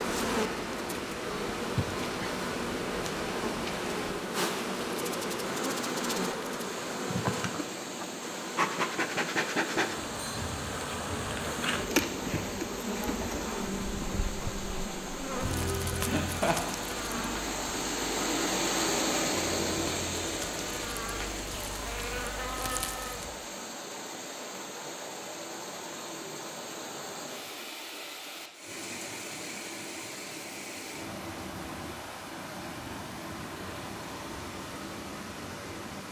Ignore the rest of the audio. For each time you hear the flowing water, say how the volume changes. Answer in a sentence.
You can hear the flowing water from 0.0 to 36.0 s, getting louder then quieter.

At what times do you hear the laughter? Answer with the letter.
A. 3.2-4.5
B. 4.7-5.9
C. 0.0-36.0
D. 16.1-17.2
D.